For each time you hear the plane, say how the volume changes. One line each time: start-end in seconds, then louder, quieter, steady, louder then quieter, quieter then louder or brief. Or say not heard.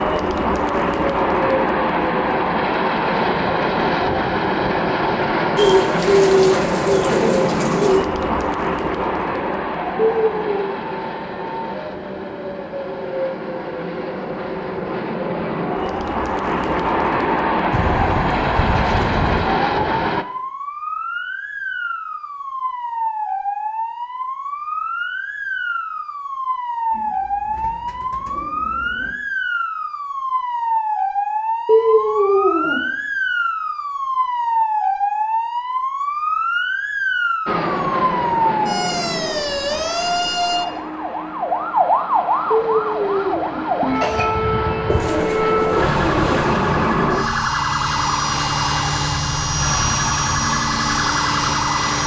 0.0-20.2 quieter then louder
37.5-52.0 quieter then louder.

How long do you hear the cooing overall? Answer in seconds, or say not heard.
8 s.